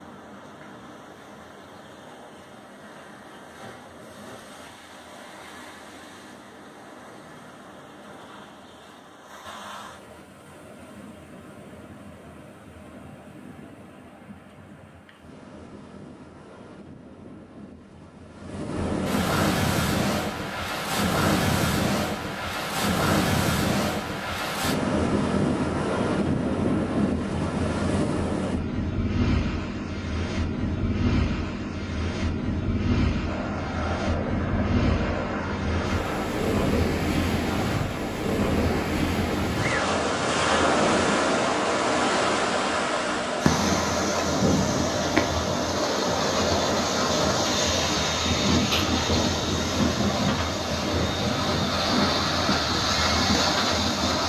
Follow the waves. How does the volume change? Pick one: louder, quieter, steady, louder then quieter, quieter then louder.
louder.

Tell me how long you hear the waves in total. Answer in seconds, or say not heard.
54 s.